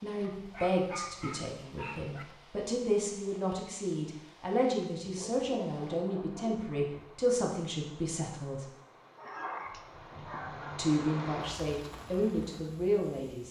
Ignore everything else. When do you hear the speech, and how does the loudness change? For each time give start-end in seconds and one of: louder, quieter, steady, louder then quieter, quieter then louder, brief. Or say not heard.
0.0-8.7 steady
10.8-13.4 brief.